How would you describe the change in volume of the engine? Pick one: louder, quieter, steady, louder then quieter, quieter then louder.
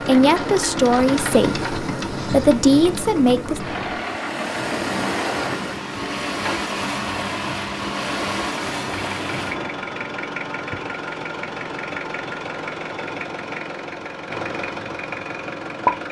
steady.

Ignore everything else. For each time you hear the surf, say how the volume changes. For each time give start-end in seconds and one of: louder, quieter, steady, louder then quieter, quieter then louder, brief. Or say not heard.
0.0-9.8 steady.